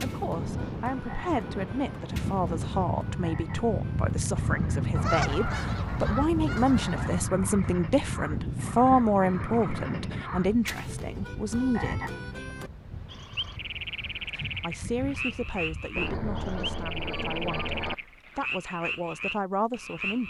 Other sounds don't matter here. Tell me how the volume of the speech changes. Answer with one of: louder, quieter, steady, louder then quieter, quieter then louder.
louder then quieter.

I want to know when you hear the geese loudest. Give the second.
5 s.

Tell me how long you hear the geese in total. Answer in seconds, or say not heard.
4 s.